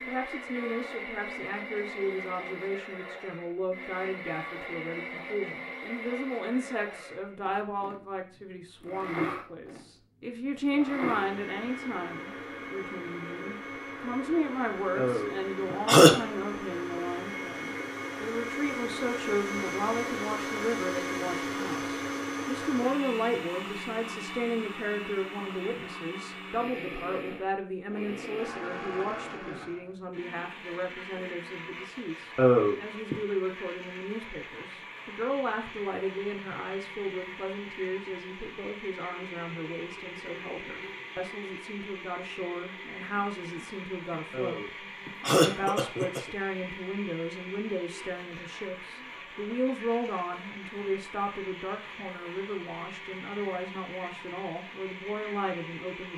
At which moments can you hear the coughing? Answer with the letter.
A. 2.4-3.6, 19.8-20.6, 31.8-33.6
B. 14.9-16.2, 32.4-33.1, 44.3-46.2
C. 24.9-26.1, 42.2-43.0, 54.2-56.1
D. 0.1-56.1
B.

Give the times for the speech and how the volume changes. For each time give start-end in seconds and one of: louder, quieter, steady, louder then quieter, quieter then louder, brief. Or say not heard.
0.1-56.1 steady.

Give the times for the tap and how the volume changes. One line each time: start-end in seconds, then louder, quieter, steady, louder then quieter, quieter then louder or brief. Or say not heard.
not heard.